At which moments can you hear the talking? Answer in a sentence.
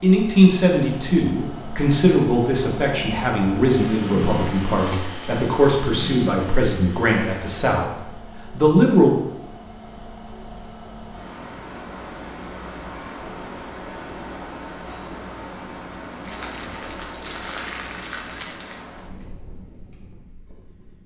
The talking can be heard from 0.0 to 9.1 s.